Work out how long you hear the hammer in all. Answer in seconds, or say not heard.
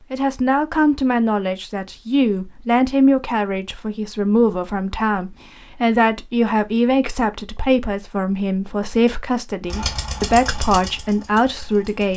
not heard.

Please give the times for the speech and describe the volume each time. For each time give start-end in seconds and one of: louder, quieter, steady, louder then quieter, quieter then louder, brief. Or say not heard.
0.1-12.1 steady.